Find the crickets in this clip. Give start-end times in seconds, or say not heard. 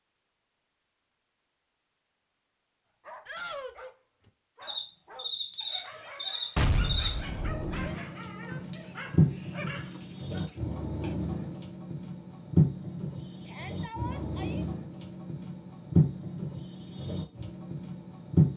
4.6-18.5.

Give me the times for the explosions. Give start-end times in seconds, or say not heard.
6.5-7.9.